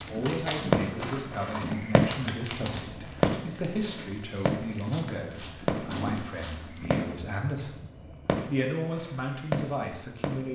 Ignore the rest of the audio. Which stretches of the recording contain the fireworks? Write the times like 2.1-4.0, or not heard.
0.0-10.5.